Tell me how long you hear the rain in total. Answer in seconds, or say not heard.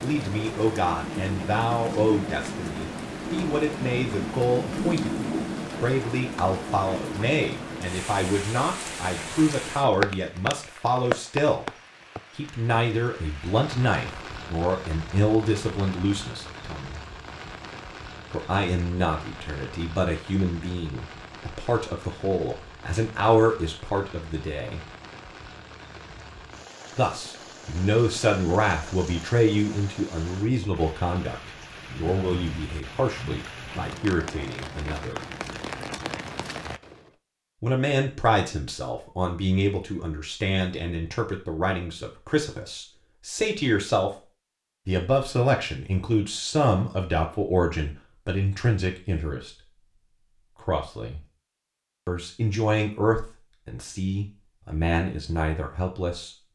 37 s.